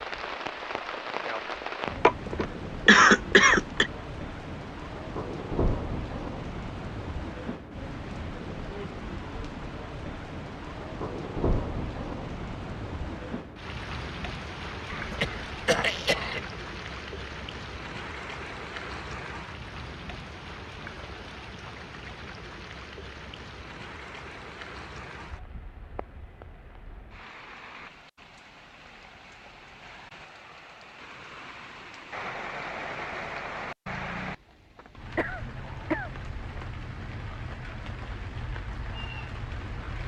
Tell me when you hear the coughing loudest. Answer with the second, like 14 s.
3 s.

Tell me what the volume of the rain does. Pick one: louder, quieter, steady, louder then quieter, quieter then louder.
quieter then louder.